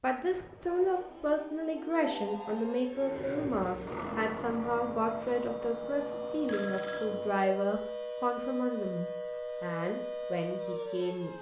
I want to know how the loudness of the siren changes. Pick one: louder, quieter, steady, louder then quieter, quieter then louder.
louder.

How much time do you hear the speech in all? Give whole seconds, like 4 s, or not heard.
11 s.